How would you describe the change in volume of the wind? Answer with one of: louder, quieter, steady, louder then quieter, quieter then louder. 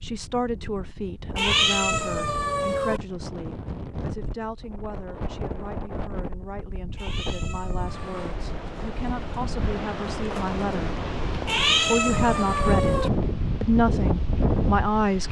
louder.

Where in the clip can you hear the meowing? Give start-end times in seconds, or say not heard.
1.4-3.0, 7.0-8.2, 11.4-13.1.